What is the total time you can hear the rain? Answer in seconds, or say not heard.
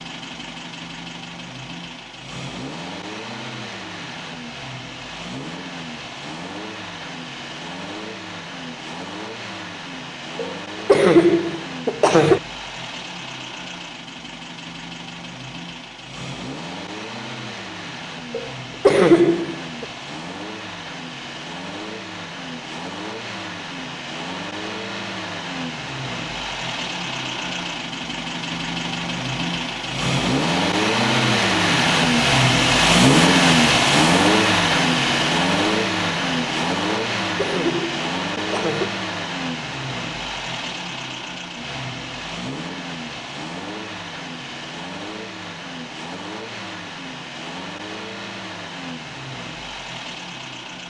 not heard.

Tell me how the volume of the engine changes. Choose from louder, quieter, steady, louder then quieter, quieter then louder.
louder then quieter.